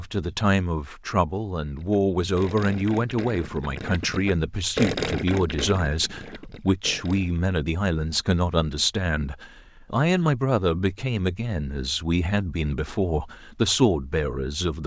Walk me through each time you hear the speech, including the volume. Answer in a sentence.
The speech can be heard from 0.0 to 14.8 s, at a steady volume.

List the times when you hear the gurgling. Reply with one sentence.
You can hear the gurgling from 1.6 to 7.4 s.